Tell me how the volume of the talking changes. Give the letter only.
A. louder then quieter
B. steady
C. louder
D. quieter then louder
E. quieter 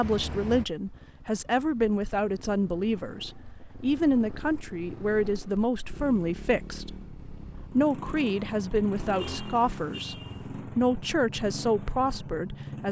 B.